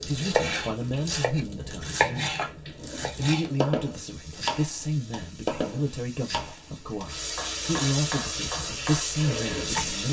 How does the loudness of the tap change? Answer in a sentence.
The volume of the tap goes down, then up.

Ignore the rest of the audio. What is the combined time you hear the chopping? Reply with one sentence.
You can hear the chopping for 10 seconds altogether.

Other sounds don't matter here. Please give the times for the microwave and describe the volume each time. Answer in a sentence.
The microwave can't be heard in this clip.